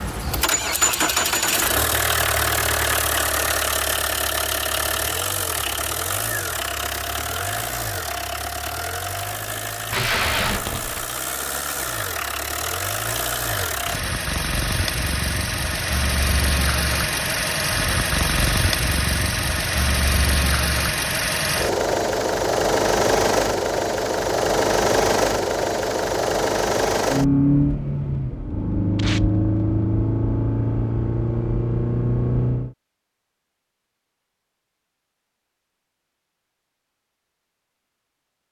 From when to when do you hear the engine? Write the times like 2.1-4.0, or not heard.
0.0-32.8.